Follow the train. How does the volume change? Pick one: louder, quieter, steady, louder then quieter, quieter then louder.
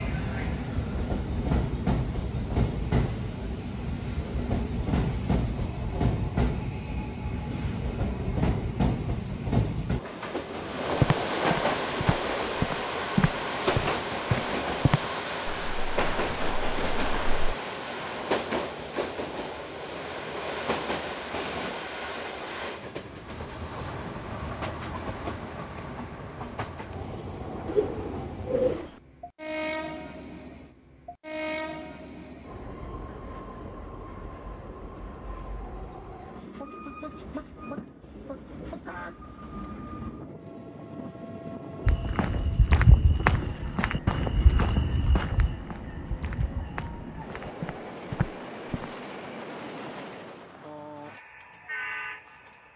quieter.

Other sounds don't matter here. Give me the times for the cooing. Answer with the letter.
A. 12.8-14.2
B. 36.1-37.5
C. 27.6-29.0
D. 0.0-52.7
C.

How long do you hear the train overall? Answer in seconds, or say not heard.
53 s.